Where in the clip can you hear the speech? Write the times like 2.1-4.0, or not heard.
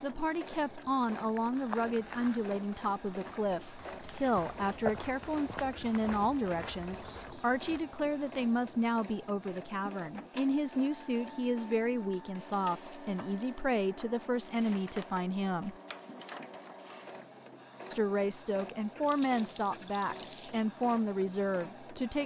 0.0-15.8, 17.9-22.2.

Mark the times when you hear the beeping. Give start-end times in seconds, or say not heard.
not heard.